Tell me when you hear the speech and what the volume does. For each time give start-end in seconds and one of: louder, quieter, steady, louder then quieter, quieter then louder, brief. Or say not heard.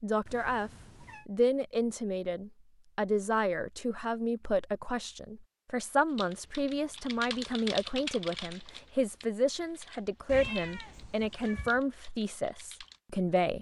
0.0-13.5 steady.